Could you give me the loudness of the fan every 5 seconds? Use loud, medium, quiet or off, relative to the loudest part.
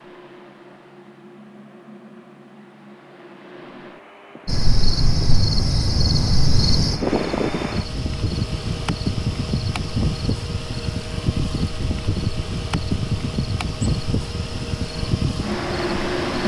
quiet, loud, loud, loud.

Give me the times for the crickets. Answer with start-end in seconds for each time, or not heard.
4.5-16.4.